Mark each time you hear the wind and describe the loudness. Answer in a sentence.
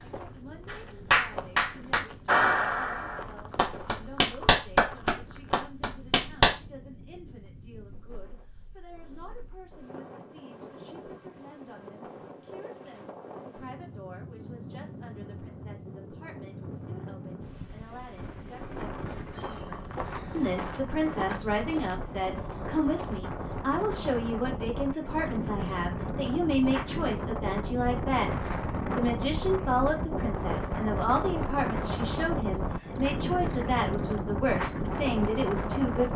You can hear the wind from 0.0 to 36.1 s, getting louder.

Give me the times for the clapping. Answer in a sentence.
The clapping can be heard from 0.7 to 6.5 s.